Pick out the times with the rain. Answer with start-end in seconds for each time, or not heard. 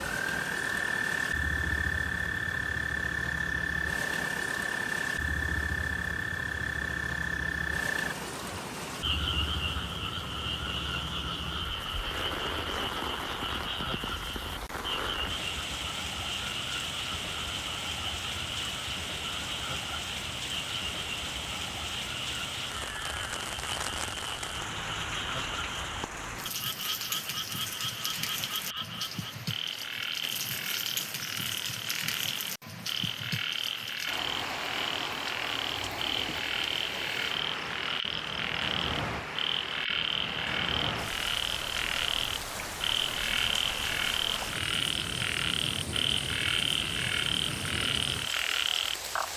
0.0-49.3.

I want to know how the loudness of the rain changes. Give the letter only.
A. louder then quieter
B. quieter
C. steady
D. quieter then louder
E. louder
C.